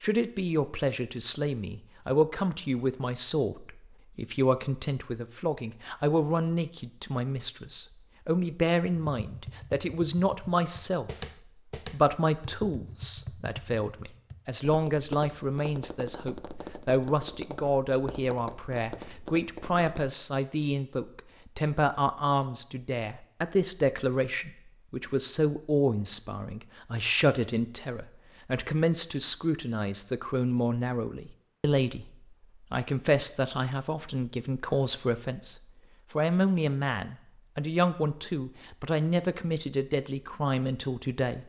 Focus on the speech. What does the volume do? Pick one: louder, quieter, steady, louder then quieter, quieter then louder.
steady.